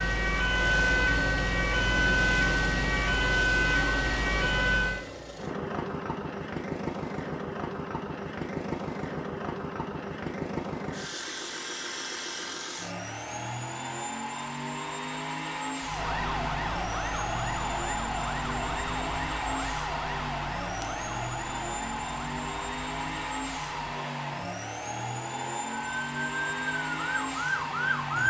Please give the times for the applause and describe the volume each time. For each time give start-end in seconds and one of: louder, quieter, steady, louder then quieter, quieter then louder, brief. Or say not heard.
not heard.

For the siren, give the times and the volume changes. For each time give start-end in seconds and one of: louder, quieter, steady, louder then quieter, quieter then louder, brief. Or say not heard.
0.0-5.0 steady
15.8-28.2 quieter then louder.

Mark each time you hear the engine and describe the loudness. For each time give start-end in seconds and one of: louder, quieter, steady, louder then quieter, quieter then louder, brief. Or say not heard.
0.1-28.2 steady.